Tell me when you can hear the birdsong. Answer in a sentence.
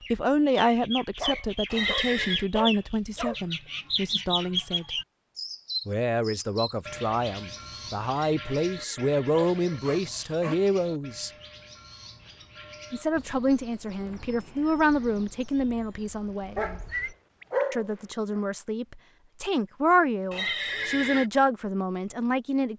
You can hear the birdsong from 0.0 to 17.6 s.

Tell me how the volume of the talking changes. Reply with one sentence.
The loudness of the talking stays about the same.